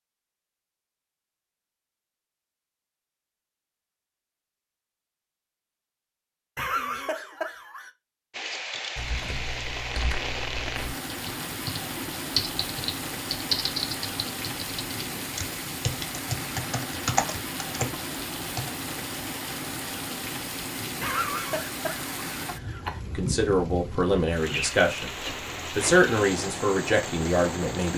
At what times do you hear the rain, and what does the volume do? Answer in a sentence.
You can hear the rain from 8.3 to 27.9 s, at a steady volume.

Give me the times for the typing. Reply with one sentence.
The typing can be heard from 8.9 to 18.7 s.